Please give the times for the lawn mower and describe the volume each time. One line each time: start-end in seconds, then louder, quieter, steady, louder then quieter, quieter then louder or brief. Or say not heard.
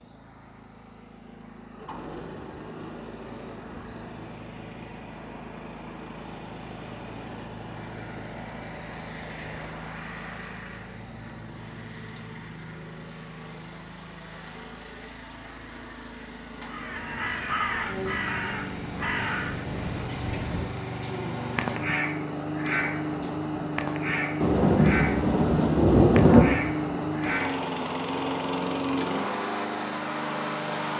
0.0-30.9 louder.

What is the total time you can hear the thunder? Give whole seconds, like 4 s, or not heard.
2 s.